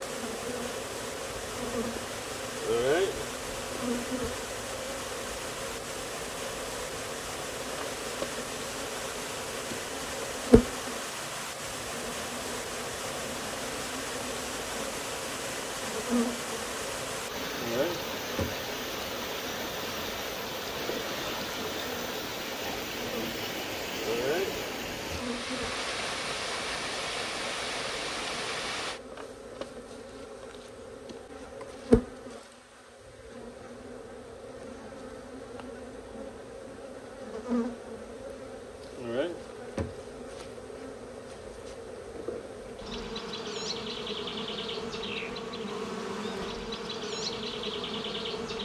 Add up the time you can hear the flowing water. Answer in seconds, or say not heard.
29 s.